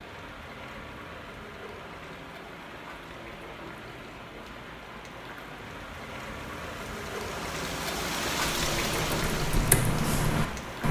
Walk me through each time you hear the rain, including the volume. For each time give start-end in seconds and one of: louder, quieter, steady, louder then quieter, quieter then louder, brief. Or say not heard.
0.0-10.8 louder.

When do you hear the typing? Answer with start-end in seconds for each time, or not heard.
8.4-10.8.